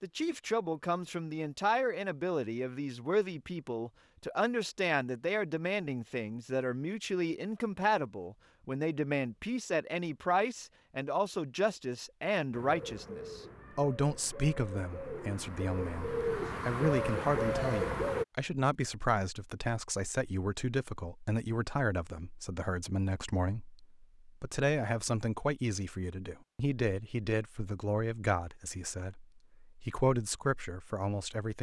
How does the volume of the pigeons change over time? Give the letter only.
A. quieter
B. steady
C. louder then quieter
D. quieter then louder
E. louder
E.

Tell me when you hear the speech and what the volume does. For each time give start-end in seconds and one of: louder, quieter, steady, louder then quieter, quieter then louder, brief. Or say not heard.
0.0-31.5 steady.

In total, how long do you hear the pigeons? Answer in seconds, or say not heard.
6 s.